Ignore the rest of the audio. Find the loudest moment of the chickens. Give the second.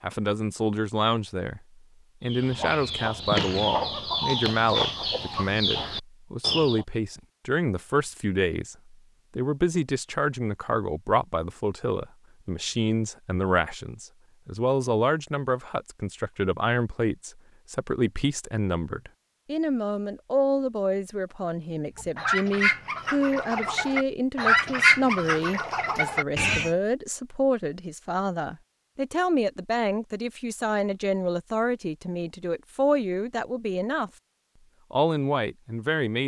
25 s.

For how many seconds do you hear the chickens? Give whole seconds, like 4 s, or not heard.
9 s.